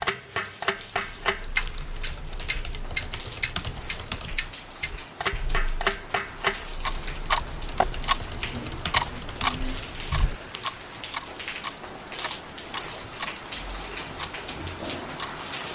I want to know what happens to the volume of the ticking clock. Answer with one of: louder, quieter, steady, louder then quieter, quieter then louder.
quieter.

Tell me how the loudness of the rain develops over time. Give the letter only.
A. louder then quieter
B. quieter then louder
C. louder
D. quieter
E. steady
C.